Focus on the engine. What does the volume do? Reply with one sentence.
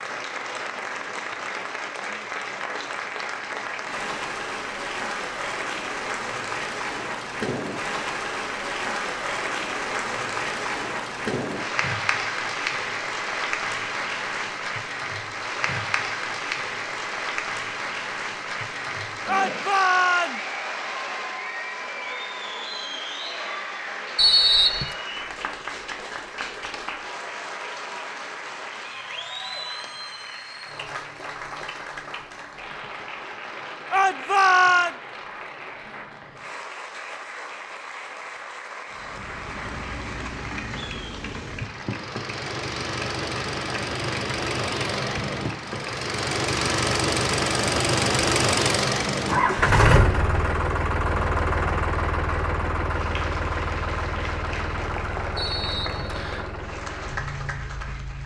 The loudness of the engine goes up, then down.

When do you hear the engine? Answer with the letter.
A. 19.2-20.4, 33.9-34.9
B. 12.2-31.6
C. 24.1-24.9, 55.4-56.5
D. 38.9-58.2
D.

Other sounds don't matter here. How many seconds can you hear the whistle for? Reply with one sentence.
You can hear the whistle for 2 seconds altogether.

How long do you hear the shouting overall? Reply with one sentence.
You can hear the shouting for 2 seconds altogether.